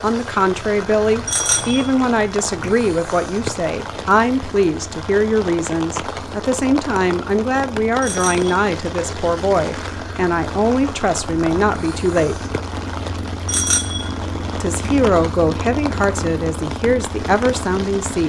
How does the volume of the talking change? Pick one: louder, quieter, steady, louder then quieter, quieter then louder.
steady.